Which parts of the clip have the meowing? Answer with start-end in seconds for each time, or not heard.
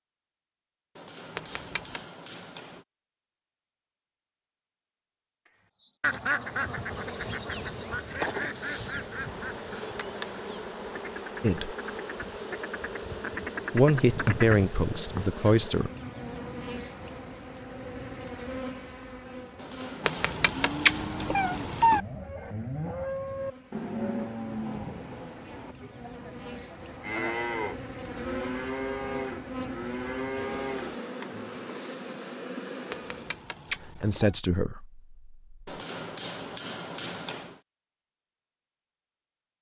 1.4-2.0, 20.0-22.0, 32.9-34.4.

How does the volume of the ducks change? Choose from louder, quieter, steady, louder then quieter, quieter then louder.
quieter then louder.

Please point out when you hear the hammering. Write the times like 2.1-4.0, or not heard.
0.9-2.9, 19.6-21.9, 35.6-37.6.